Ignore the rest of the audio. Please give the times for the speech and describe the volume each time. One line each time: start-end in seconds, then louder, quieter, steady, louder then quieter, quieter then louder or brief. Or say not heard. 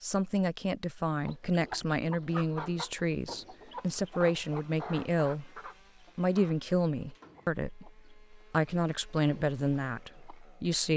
0.0-10.9 steady.